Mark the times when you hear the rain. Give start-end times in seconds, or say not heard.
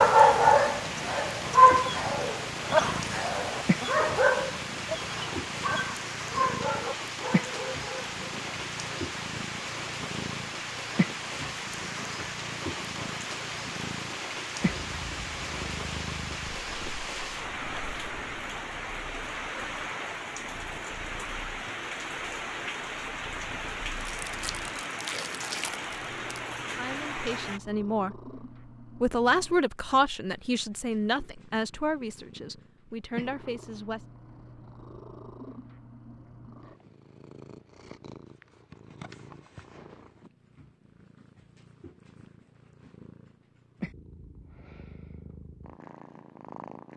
0.0-27.6.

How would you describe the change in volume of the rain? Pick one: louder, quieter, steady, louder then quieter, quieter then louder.
steady.